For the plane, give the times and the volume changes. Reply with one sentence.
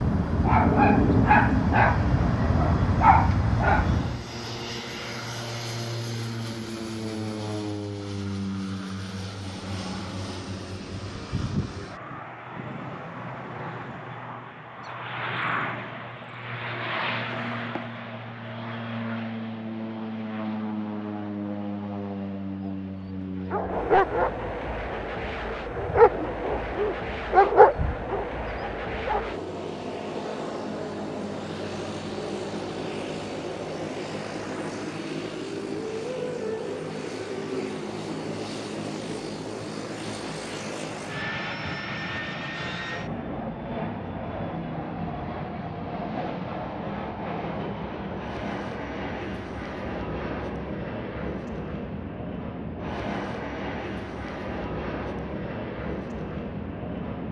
You can hear the plane from 0.0 to 57.2 s, at a steady volume.